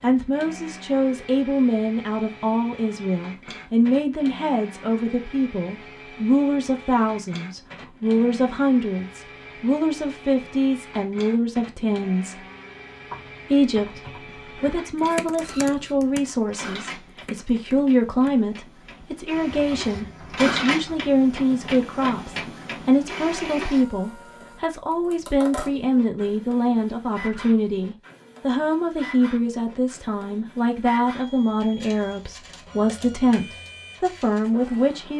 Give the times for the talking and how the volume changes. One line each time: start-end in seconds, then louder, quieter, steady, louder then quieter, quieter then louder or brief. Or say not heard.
0.0-12.3 steady
13.5-35.1 steady.